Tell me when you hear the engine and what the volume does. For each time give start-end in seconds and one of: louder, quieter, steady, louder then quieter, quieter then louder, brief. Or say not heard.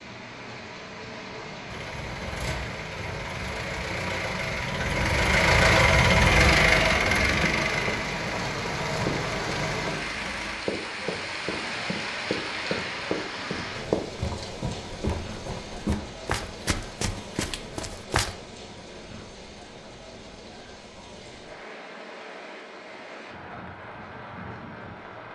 1.6-10.6 louder then quieter.